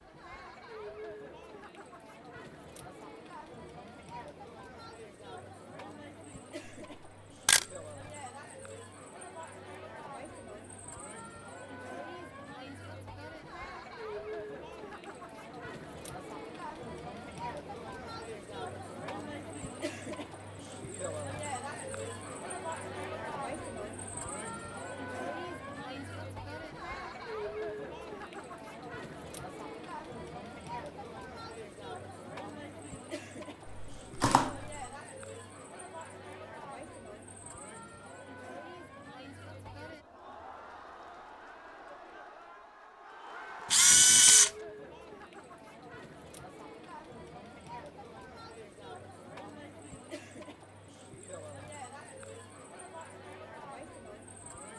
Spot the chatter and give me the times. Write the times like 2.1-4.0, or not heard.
0.0-54.7.